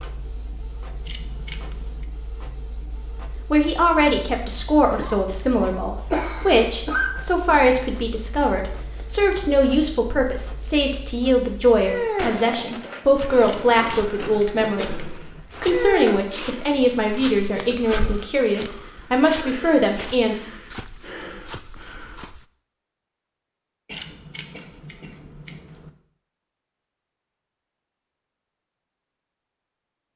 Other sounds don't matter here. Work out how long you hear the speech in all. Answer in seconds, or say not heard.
17 s.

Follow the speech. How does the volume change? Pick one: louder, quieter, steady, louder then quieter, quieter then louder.
steady.